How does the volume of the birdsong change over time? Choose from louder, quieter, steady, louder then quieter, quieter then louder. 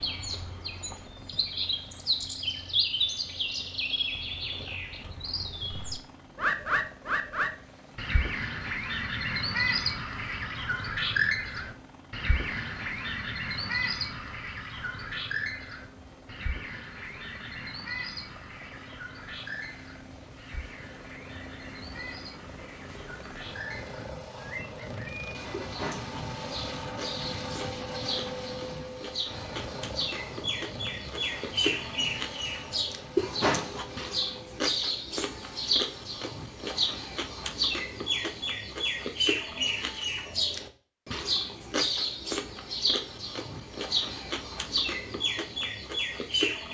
quieter then louder.